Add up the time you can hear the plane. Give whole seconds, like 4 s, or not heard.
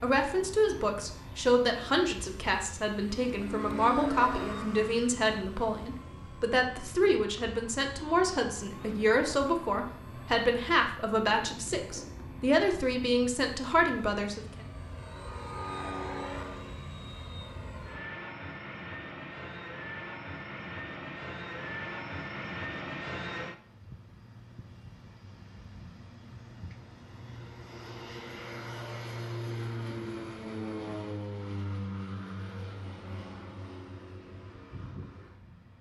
36 s.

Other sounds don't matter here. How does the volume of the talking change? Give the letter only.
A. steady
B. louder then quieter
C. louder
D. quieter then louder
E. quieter
A.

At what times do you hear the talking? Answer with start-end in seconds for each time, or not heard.
0.0-14.4.